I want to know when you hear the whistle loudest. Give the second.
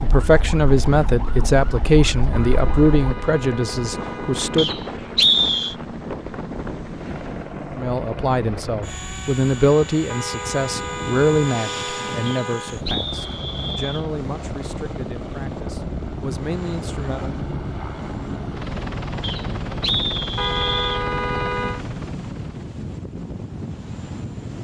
5 s.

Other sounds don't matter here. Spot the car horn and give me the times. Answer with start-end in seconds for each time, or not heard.
2.3-4.7, 10.1-12.8, 20.4-21.8.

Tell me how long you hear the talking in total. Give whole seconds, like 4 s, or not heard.
14 s.